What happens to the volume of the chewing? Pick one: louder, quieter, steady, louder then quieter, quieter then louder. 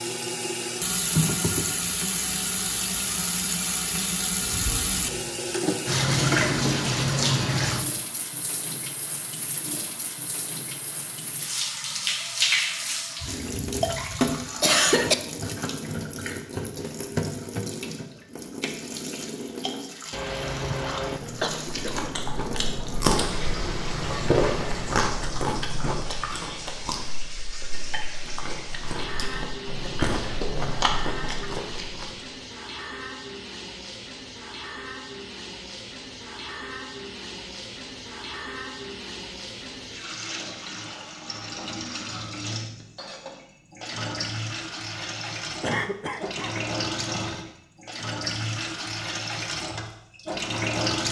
quieter then louder.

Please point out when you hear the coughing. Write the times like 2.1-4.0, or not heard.
13.2-15.2, 20.1-22.1, 45.6-46.6.